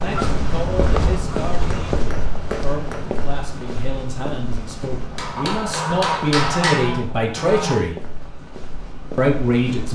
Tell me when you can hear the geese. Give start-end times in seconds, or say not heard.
0.1-2.1, 5.3-7.8.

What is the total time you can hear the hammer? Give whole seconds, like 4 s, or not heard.
3 s.